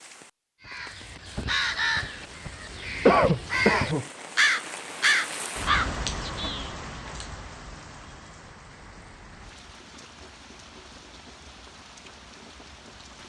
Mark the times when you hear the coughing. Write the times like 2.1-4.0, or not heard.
3.0-4.0.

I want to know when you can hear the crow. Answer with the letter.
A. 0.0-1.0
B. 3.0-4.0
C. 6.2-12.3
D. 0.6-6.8
D.